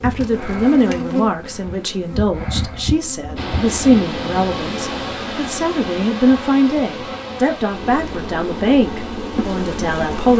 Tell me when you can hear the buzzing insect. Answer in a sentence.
You can hear the buzzing insect from 0.0 to 10.3 s.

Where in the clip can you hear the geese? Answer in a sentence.
The geese can't be heard in this clip.